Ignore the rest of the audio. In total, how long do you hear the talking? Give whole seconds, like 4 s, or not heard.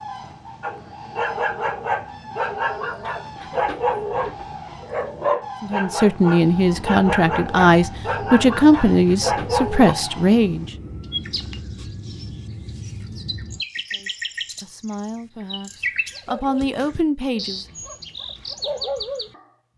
9 s.